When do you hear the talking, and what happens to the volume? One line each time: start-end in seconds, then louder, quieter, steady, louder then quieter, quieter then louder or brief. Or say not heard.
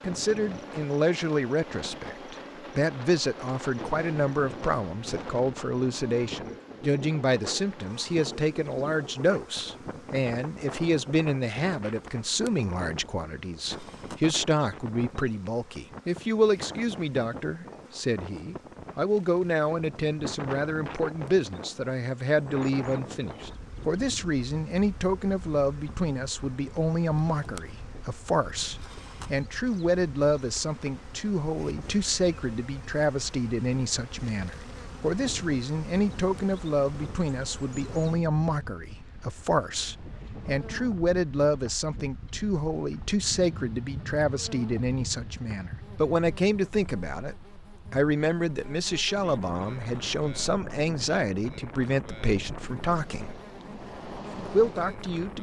0.0-53.4 steady
54.5-55.3 brief.